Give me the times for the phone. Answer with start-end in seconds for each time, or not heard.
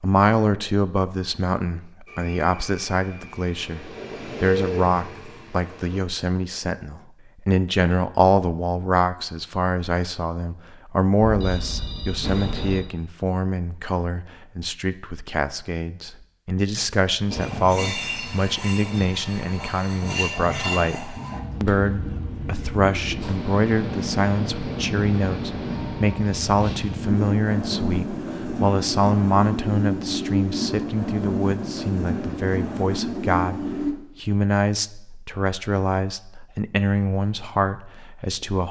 11.2-12.8.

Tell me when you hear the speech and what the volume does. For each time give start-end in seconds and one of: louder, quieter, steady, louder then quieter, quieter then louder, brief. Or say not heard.
0.0-38.6 steady.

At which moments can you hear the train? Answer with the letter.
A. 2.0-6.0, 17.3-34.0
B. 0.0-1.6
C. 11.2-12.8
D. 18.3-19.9
A.